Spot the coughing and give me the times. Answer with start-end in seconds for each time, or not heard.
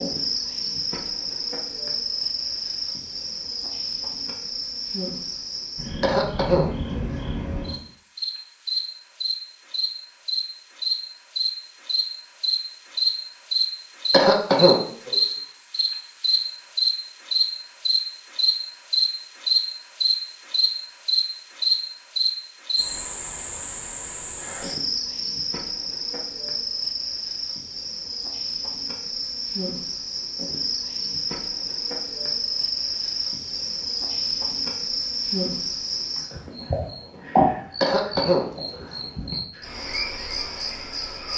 6.0-7.0, 14.1-15.2, 37.8-38.9.